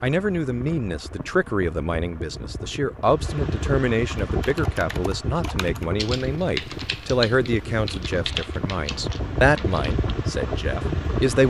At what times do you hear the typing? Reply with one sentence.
The typing can be heard from 4.3 to 10.0 s.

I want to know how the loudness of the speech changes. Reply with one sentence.
The loudness of the speech stays about the same.